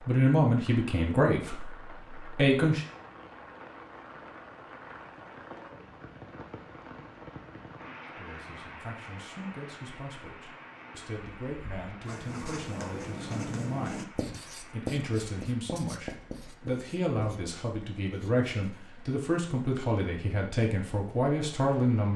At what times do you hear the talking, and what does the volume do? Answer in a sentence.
You can hear the talking briefly from 0.1 to 2.9 s; and from 8.2 to 22.1 s, getting louder.